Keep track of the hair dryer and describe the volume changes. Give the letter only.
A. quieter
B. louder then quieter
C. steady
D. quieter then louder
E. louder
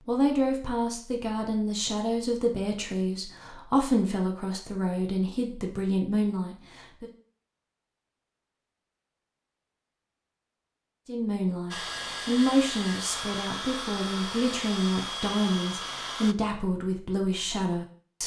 C.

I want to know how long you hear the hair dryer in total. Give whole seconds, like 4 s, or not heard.
5 s.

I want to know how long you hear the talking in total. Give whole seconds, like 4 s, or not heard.
14 s.